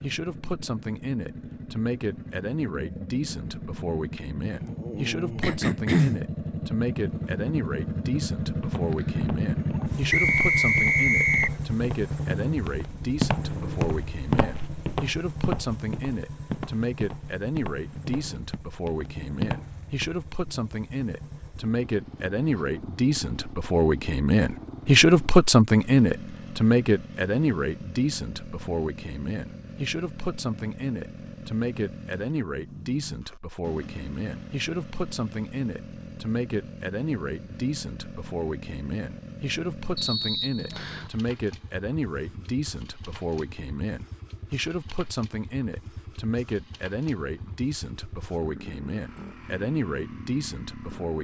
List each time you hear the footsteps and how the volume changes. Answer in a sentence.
The footsteps can be heard from 8.4 to 20.1 s, getting louder then quieter.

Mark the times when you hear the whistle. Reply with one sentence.
You can hear the whistle from 10.1 to 11.6 s and from 40.0 to 41.1 s.